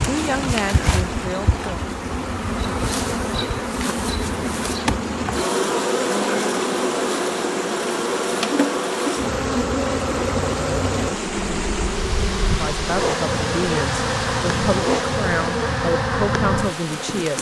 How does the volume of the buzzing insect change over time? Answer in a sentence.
The volume of the buzzing insect stays about the same.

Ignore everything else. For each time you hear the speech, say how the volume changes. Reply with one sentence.
The speech can be heard briefly from 0.1 to 1.8 s; and from 12.6 to 17.3 s, at a steady volume.